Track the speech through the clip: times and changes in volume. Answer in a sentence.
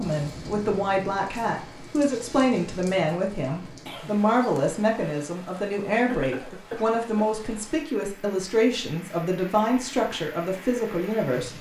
You can hear the speech from 0.0 to 11.5 s, at a steady volume.